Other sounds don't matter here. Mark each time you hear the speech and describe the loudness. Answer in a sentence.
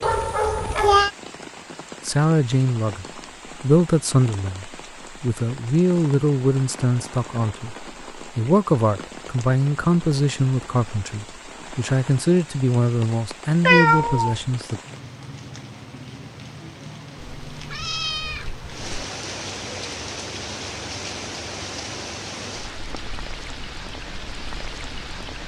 The speech can be heard from 2.0 to 14.8 s, at a steady volume.